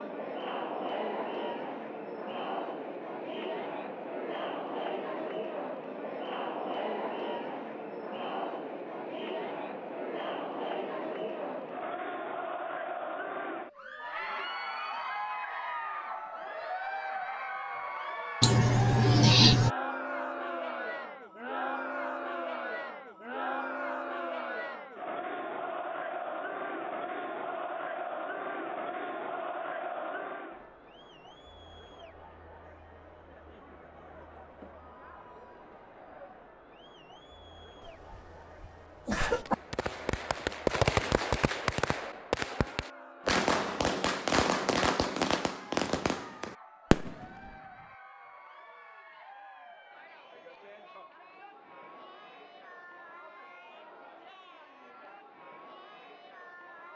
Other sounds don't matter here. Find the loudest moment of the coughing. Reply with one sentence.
The loudest moment of the coughing is at 19 seconds.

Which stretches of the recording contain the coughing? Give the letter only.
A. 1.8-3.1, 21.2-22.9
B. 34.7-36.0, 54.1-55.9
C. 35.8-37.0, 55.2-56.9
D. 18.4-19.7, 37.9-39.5
D.